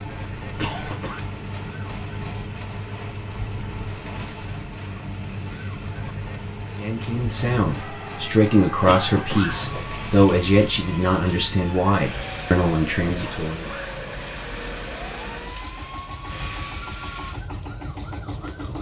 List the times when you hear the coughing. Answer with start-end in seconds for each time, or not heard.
0.6-1.2, 8.8-9.9, 13.2-14.2.